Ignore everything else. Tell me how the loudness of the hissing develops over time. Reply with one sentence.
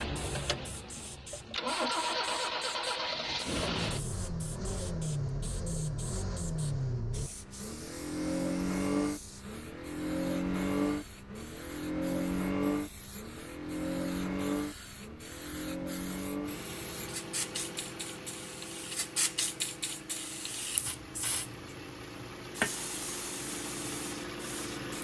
The volume of the hissing goes up.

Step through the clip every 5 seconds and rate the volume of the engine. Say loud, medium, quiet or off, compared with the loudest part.
loud, loud, loud, medium, medium.